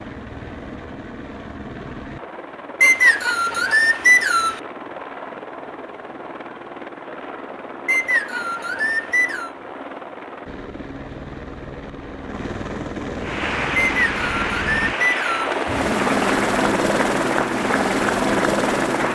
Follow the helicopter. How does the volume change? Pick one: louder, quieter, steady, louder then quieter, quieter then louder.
louder.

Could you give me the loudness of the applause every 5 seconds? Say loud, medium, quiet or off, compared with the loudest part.
off, off, loud, loud.